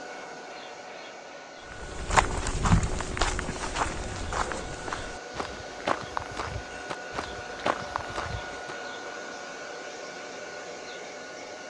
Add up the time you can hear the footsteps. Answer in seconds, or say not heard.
7 s.